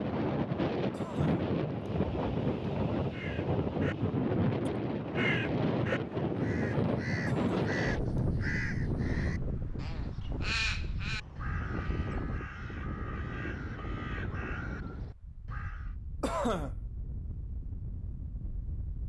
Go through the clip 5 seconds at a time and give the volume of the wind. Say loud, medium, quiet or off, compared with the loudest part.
loud, loud, medium, quiet.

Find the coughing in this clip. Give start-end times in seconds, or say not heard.
0.9-1.9, 7.2-8.2, 16.2-16.8.